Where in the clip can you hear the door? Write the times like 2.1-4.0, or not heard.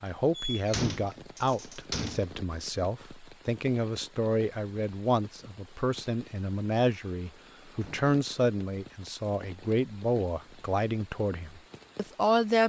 0.3-2.3, 7.7-8.1.